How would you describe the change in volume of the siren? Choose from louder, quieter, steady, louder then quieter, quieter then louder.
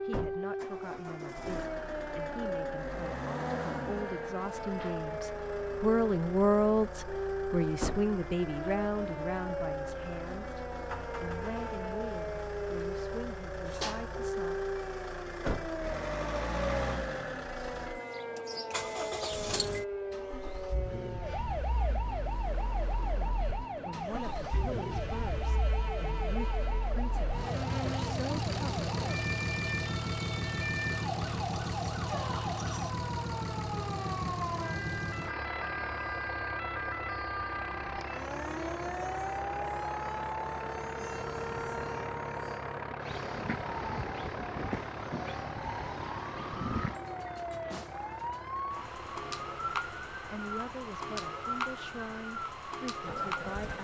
steady.